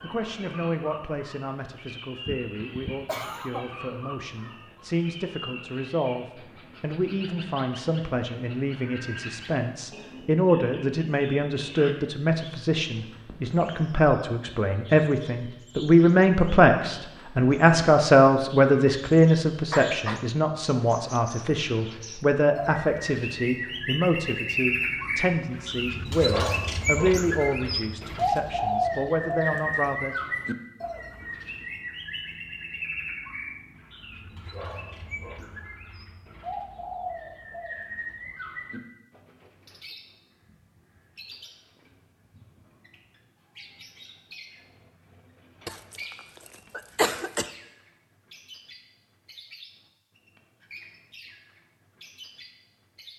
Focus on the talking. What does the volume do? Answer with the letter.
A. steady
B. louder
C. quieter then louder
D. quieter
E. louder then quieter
E.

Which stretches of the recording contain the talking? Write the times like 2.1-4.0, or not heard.
0.0-30.1.